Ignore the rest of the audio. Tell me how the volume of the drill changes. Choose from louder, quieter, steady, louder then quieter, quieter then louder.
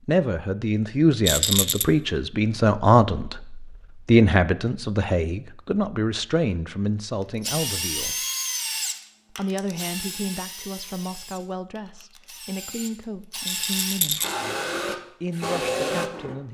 quieter then louder.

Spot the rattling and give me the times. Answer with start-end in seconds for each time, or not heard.
1.2-1.9, 13.4-14.3.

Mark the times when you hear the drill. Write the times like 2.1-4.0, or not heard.
7.4-16.4.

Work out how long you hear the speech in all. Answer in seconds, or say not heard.
15 s.